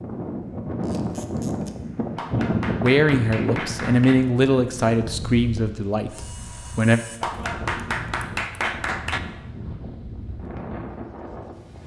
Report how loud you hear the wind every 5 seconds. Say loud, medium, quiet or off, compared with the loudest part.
loud, medium, medium.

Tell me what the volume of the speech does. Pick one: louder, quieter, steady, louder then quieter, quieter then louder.
louder then quieter.